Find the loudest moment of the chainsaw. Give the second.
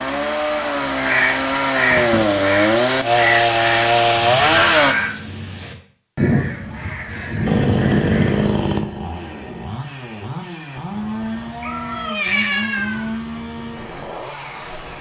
4 s.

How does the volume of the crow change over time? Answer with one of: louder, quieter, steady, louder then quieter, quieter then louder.
steady.